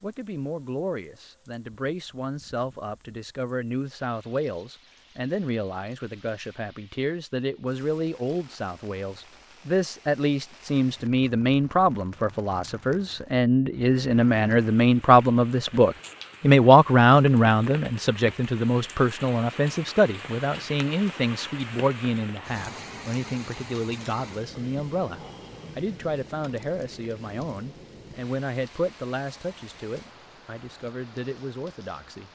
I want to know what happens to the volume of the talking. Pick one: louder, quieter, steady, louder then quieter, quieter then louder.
louder then quieter.